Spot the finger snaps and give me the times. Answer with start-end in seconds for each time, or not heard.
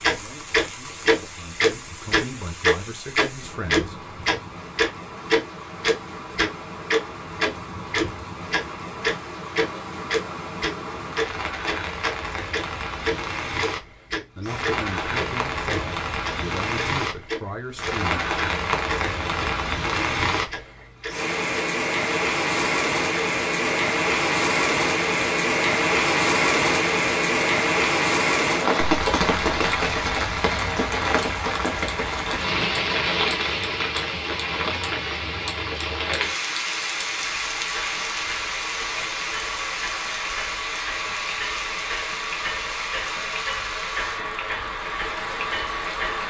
not heard.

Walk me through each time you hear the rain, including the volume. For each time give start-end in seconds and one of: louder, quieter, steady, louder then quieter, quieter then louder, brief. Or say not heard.
0.0-46.2 louder then quieter.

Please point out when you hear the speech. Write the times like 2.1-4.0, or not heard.
0.1-4.0, 14.3-18.9.